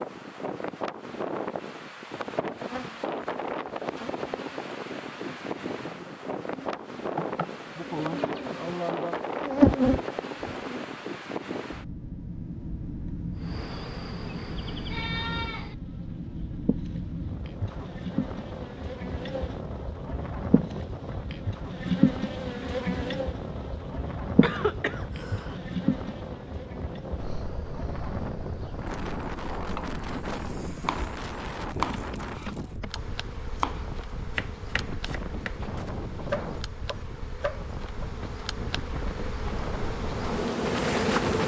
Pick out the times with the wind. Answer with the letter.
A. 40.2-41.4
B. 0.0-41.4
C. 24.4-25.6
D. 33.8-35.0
B.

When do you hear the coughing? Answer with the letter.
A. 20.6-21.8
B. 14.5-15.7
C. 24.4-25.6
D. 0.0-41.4
C.